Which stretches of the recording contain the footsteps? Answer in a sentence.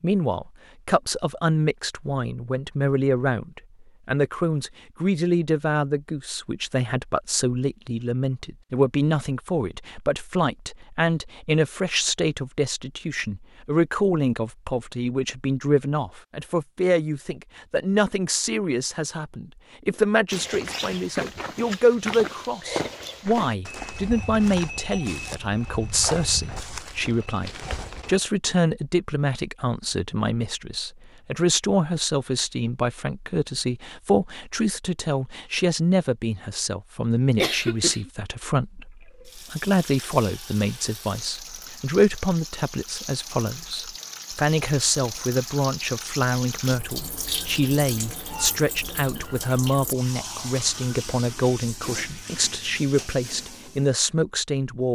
The footsteps can be heard from 20.3 to 28.2 s.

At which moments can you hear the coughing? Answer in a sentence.
You can hear the coughing from 37.4 to 38.1 s.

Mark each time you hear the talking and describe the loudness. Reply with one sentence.
The talking can be heard from 0.0 to 54.9 s, at a steady volume.